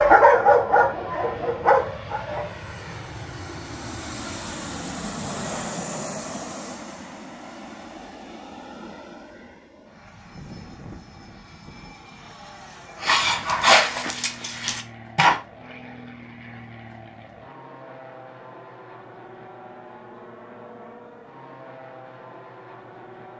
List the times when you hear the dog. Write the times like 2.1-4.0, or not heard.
0.0-2.5, 13.0-15.3.